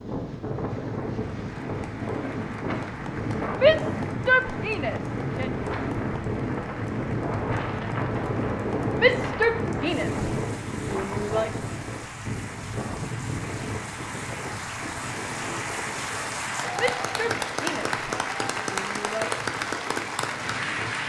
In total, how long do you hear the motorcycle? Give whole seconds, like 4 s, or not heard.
not heard.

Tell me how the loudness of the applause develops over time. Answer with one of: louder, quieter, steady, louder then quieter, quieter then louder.
louder.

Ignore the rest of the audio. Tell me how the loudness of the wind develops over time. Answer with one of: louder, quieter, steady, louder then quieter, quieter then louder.
quieter.